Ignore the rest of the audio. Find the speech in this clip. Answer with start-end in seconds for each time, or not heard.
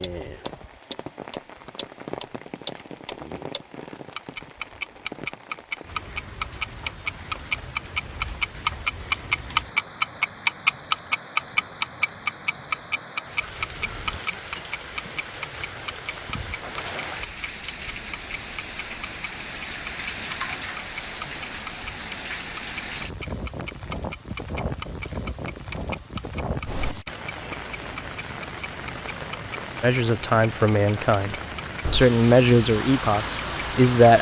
29.8-34.1.